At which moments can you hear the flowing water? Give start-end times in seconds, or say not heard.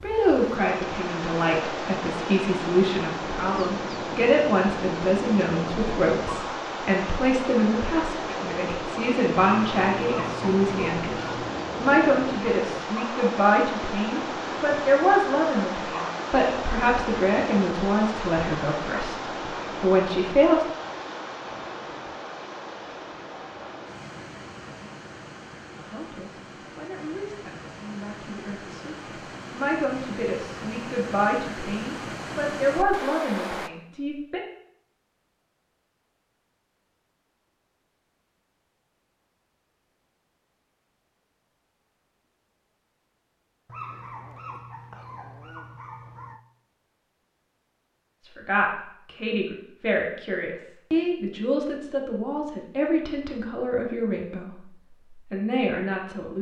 0.0-33.7.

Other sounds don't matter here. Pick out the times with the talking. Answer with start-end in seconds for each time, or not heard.
0.0-20.6, 25.8-34.5, 48.2-56.3.